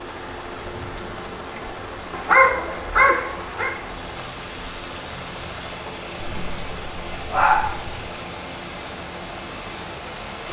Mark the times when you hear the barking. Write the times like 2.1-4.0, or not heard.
2.1-3.7, 6.2-8.1.